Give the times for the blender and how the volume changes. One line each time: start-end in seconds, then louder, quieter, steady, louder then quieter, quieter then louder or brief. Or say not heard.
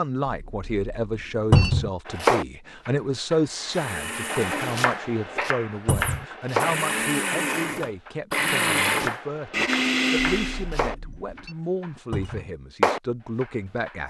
3.5-10.7 quieter then louder.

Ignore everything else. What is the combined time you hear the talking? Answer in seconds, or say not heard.
14 s.